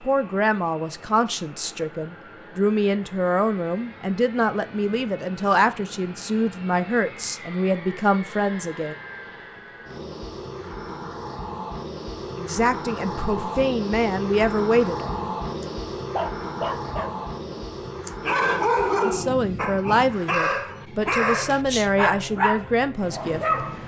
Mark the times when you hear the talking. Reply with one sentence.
You can hear the talking from 0.0 to 8.9 s, from 12.3 to 15.2 s and from 19.1 to 23.4 s.